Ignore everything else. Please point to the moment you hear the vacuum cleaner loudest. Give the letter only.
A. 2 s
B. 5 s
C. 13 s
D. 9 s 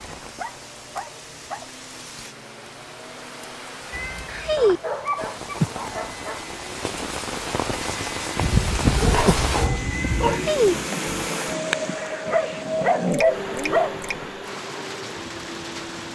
C.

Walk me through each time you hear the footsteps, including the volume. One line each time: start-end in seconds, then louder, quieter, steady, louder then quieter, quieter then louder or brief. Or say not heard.
not heard.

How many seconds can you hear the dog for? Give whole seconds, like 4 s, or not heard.
8 s.